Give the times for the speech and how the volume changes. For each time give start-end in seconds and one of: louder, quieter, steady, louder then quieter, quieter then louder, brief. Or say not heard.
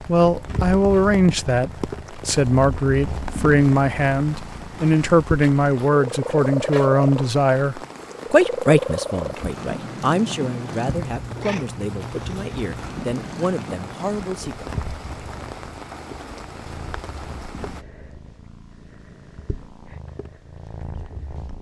0.1-14.7 quieter.